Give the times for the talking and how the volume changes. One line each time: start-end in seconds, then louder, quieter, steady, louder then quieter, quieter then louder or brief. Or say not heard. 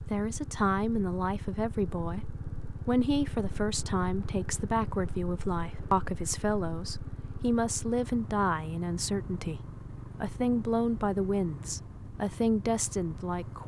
0.1-13.6 steady.